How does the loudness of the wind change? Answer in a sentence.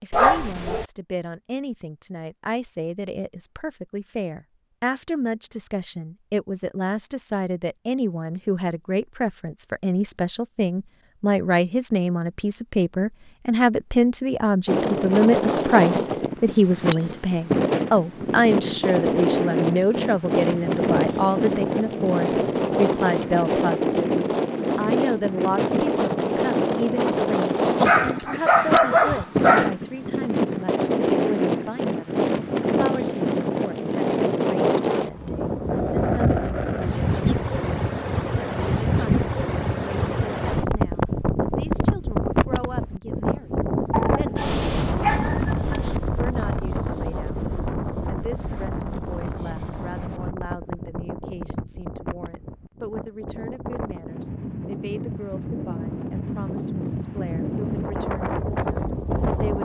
The volume of the wind goes down.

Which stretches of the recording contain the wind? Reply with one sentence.
The wind can be heard from 14.7 to 59.6 s.